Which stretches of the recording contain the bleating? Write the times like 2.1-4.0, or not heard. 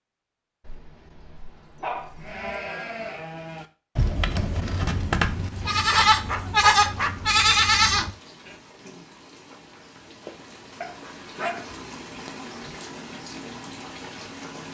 2.1-8.2.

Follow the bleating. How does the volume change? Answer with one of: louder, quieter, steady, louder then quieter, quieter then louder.
louder.